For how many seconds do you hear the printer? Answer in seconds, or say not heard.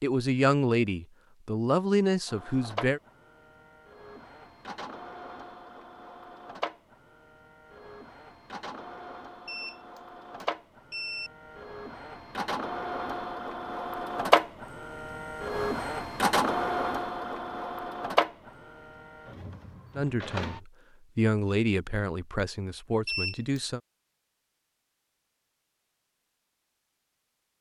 18 s.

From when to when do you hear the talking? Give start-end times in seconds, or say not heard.
0.0-3.0, 19.9-23.8.